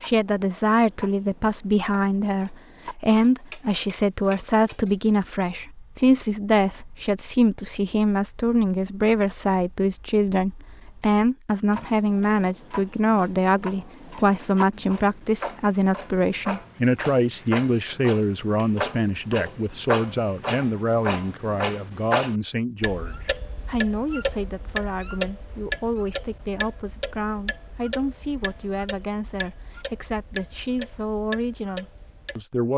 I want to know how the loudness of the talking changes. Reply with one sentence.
The loudness of the talking goes down.